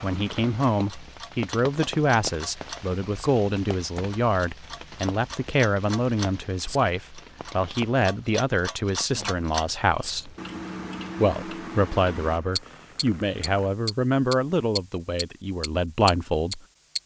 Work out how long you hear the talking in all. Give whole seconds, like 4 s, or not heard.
16 s.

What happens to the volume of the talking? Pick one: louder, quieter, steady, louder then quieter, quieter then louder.
steady.